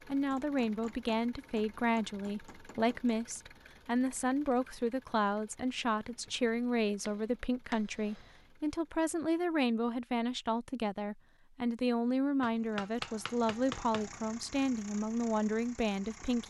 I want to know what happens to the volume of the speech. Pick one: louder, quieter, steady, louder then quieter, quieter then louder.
steady.